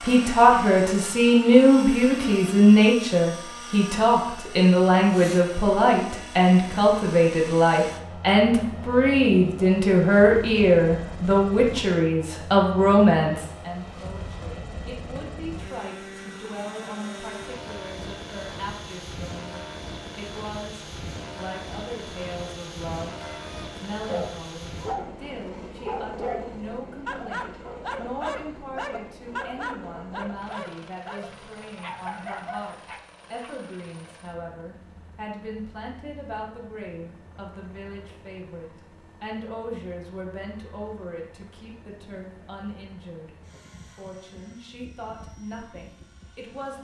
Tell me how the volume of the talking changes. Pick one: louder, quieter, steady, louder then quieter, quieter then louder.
quieter.